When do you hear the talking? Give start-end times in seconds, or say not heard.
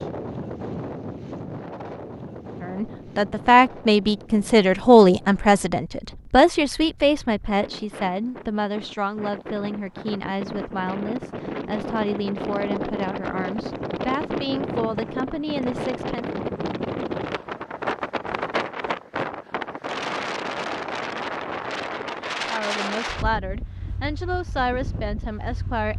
2.6-16.2, 22.4-25.9.